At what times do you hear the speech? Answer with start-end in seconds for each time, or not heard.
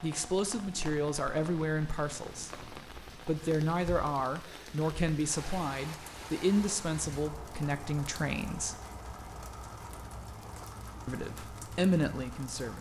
0.0-8.8, 11.1-12.7.